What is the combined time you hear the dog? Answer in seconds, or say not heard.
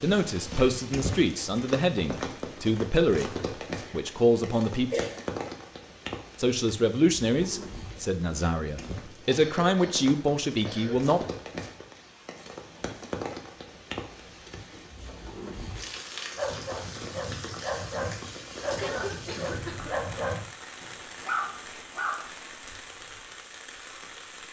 6 s.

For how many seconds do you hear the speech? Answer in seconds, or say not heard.
10 s.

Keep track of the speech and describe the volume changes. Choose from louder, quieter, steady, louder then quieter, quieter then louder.
steady.